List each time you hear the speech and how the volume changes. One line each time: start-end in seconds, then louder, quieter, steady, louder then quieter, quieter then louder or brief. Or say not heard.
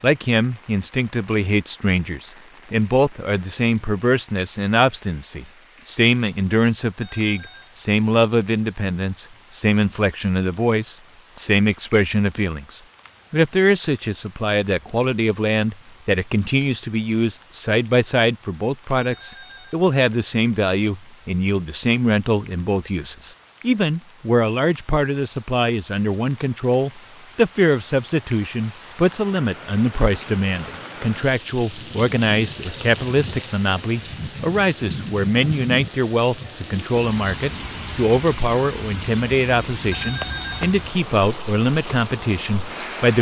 0.0-43.1 steady.